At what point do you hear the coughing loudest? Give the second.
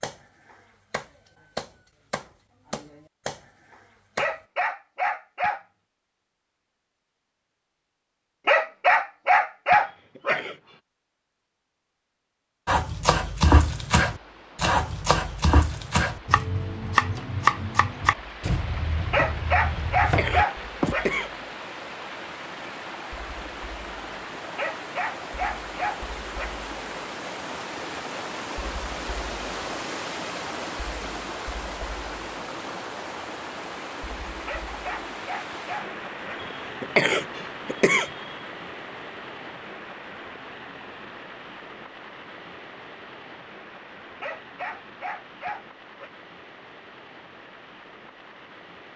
37 s.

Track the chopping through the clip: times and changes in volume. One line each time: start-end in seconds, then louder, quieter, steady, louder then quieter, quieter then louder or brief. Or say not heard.
0.0-4.4 louder then quieter
12.7-20.9 quieter.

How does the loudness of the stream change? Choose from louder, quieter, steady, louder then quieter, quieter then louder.
louder then quieter.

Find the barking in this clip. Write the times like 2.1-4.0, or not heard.
4.2-5.6, 8.4-10.4, 19.1-21.1, 24.6-26.6, 34.5-36.5, 44.2-46.1.